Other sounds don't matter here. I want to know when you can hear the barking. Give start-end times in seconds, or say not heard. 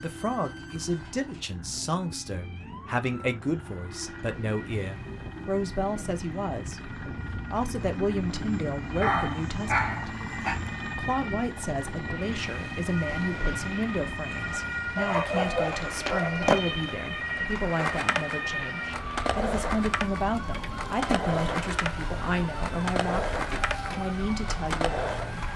9.0-10.6, 14.9-16.5.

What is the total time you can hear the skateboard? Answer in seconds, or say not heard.
10 s.